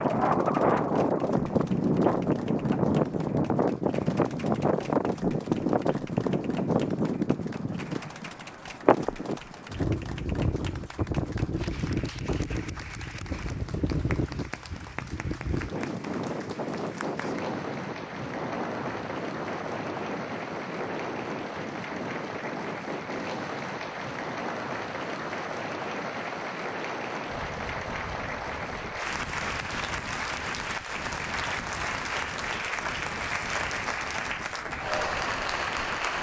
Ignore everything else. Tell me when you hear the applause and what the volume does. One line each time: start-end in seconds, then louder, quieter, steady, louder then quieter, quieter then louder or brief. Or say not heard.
0.0-36.1 louder.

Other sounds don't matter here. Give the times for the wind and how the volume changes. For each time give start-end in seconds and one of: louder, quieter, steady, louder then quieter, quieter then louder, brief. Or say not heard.
0.0-36.1 quieter.